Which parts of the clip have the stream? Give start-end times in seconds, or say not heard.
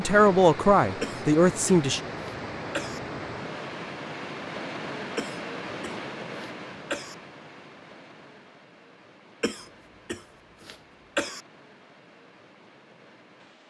0.0-13.6.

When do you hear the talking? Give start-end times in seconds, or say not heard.
0.0-2.0.